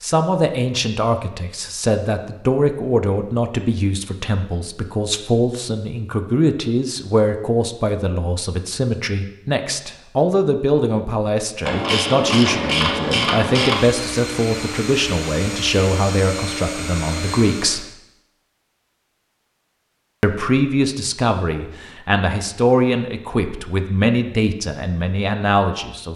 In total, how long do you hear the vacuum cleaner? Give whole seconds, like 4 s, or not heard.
4 s.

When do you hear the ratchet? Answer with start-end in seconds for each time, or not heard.
11.7-13.8.